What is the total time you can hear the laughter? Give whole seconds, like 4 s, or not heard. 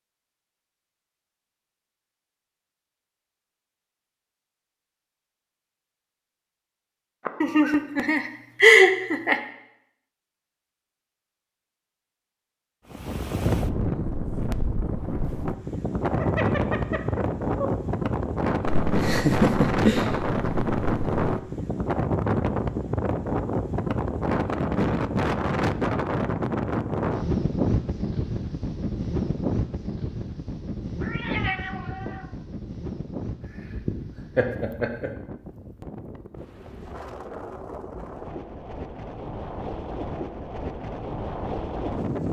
6 s.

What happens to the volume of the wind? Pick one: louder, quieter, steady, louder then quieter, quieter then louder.
quieter.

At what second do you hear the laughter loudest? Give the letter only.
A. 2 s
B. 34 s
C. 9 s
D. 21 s
C.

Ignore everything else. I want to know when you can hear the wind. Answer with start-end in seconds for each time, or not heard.
12.9-42.2.